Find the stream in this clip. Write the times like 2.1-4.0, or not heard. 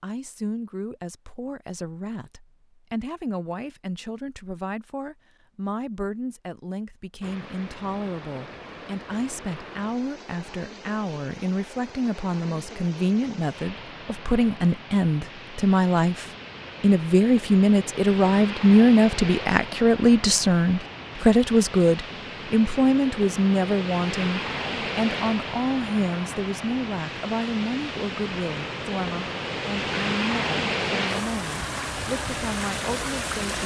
7.2-33.6.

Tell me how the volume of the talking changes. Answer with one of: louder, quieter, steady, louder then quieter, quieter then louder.
louder then quieter.